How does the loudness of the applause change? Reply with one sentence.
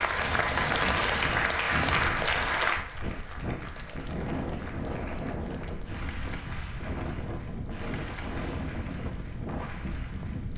The volume of the applause goes down.